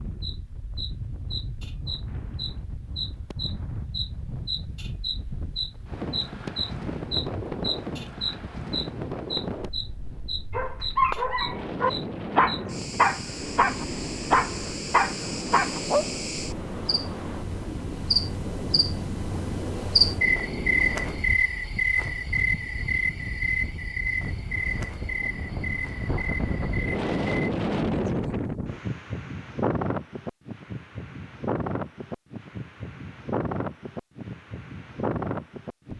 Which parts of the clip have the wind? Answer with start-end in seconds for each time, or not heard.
0.0-35.9.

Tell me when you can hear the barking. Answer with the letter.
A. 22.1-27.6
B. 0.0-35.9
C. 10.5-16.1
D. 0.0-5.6
C.